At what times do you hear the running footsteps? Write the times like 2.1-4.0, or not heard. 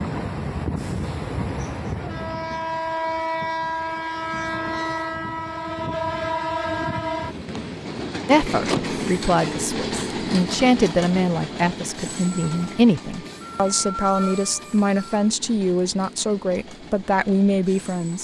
not heard.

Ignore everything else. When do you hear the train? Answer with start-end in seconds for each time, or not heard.
0.0-18.1.